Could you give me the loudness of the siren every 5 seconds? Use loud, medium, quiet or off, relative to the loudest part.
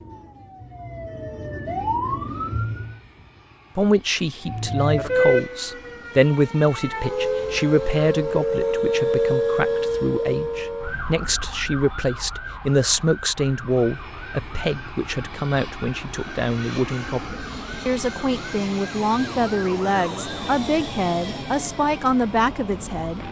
medium, loud, medium, quiet, quiet.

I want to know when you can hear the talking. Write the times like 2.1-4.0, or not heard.
3.8-23.2.